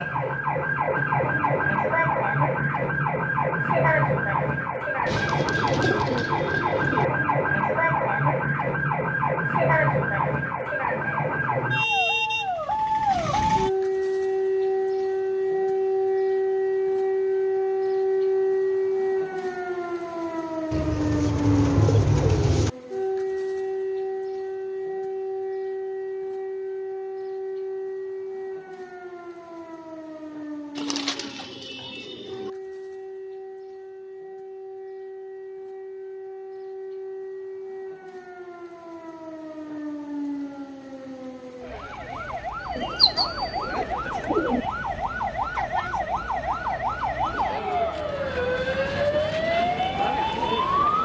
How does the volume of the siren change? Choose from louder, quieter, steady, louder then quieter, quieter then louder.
quieter then louder.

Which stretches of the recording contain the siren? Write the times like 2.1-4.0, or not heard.
0.0-51.0.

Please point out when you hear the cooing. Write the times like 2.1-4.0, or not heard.
5.0-7.0, 20.7-22.7, 30.8-32.5, 42.8-44.6.